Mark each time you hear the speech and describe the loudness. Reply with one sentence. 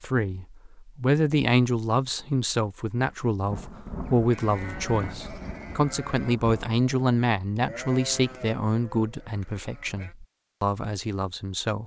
The speech can be heard from 0.0 to 11.8 s, getting quieter.